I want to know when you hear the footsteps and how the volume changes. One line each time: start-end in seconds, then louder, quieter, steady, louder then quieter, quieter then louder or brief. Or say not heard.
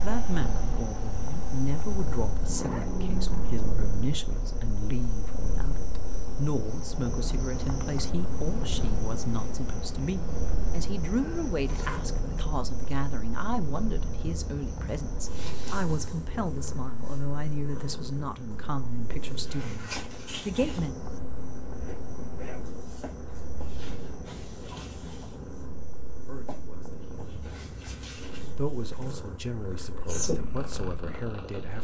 not heard.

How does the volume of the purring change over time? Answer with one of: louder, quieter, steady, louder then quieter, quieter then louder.
steady.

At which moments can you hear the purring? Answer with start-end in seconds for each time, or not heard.
0.2-31.7.